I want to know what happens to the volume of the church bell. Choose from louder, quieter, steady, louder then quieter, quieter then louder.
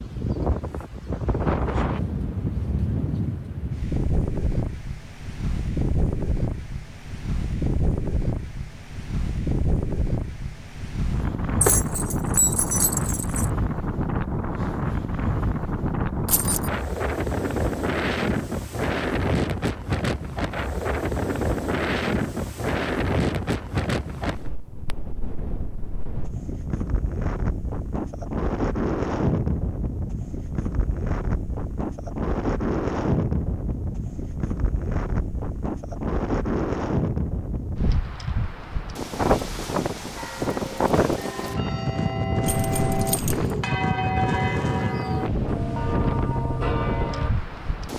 louder.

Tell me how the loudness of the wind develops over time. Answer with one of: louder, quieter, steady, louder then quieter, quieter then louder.
steady.